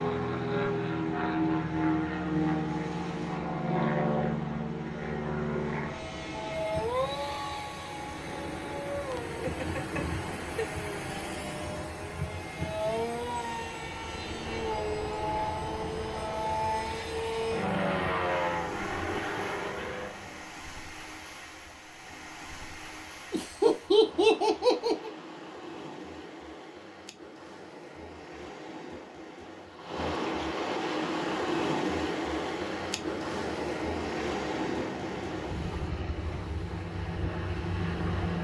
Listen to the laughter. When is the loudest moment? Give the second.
24 s.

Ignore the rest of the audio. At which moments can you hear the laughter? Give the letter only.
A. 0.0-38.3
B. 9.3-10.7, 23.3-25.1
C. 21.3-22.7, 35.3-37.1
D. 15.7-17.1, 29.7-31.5
B.